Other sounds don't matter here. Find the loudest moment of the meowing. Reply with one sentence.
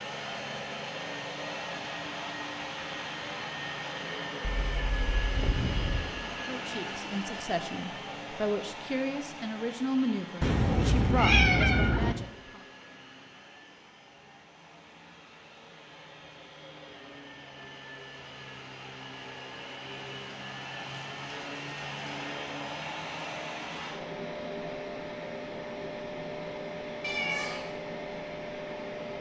The loudest moment of the meowing is at 11 seconds.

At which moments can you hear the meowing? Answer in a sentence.
You can hear the meowing from 4.4 to 6.2 s, from 10.4 to 12.2 s and from 27.0 to 27.6 s.